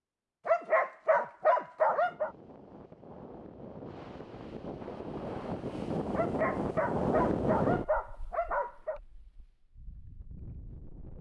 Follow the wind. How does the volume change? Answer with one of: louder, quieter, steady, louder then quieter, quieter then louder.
louder then quieter.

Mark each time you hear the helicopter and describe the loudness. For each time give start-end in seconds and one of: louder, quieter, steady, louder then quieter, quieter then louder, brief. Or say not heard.
not heard.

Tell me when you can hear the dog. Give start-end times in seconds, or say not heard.
0.5-2.3, 6.1-9.0.